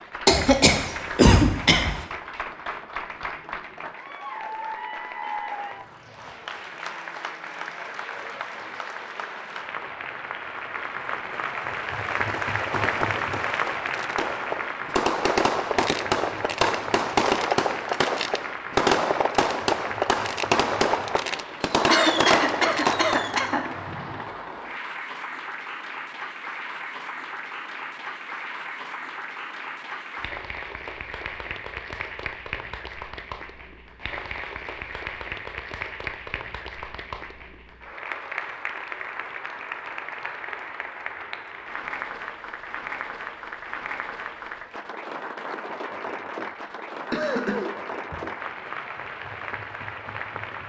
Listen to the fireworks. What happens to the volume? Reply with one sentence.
The loudness of the fireworks goes up.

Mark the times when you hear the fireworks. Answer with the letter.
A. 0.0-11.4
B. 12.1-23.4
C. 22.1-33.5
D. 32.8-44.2
B.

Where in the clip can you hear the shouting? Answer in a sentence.
You can't hear the shouting here.